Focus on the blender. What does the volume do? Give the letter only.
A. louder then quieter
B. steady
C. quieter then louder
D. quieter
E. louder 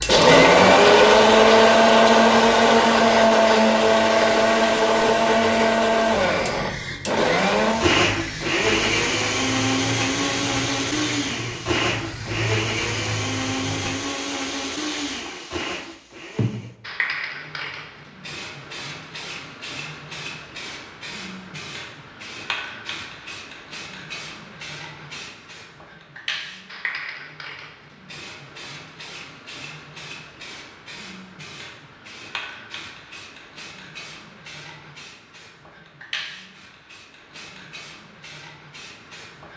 D.